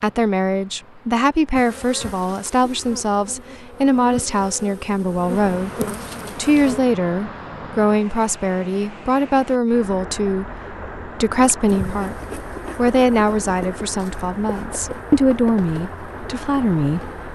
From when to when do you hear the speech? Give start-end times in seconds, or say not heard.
0.0-5.7, 6.3-12.2, 12.8-17.1.